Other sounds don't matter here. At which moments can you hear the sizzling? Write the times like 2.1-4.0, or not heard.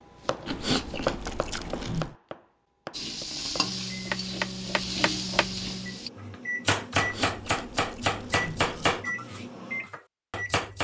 2.9-6.1.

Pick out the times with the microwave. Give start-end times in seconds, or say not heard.
3.5-10.7.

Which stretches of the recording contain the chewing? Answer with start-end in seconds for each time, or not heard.
0.5-2.1, 7.0-9.1.